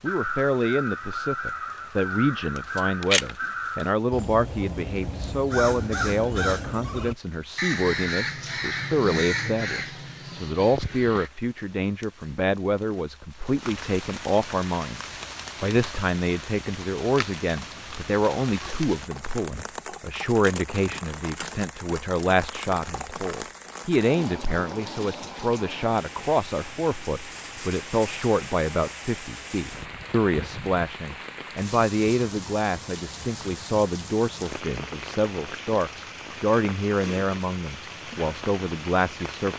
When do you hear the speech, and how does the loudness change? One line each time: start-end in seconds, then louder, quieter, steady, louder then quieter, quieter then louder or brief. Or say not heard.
0.0-39.5 steady.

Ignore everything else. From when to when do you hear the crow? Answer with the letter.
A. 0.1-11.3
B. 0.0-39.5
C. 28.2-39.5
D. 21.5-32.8
A.